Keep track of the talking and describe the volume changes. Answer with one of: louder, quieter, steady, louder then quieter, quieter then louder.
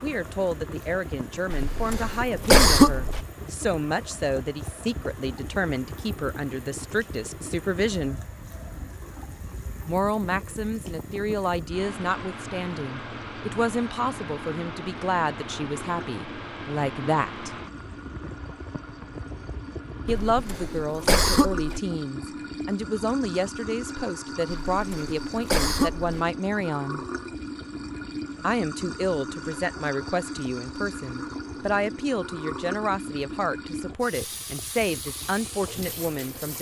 steady.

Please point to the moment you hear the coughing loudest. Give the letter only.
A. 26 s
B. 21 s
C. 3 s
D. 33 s
C.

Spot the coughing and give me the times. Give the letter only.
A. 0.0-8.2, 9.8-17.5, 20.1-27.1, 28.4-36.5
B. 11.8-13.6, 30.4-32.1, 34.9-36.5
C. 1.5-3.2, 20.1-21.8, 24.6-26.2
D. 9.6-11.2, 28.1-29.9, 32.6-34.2
C.